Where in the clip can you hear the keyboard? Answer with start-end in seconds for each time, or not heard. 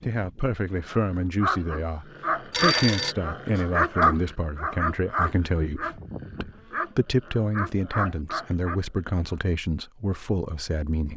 not heard.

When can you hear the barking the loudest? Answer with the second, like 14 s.
4 s.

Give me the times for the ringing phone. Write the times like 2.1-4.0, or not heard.
2.5-3.1.